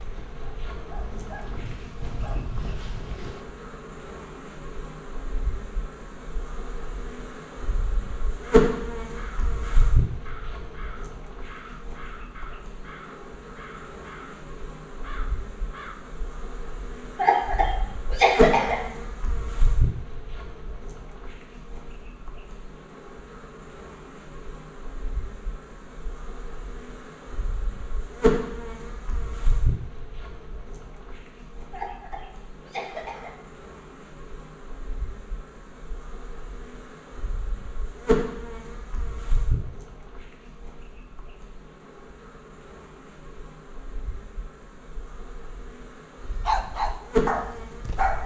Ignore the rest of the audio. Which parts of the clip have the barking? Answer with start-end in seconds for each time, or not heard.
0.0-3.5, 46.5-48.2.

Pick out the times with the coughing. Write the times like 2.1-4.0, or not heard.
17.1-18.8, 31.7-33.4.